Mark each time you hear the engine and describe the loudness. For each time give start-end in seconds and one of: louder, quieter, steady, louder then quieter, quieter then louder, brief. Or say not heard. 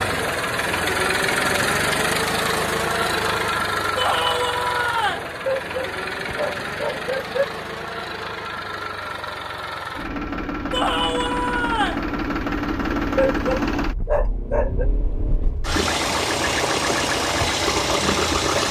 0.0-18.6 quieter then louder.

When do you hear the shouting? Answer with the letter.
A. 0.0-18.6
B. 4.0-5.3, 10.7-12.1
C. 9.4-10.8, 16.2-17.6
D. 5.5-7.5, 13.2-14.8
B.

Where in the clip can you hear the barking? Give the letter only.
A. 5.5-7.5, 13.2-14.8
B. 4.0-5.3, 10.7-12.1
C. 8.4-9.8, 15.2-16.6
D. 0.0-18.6
A.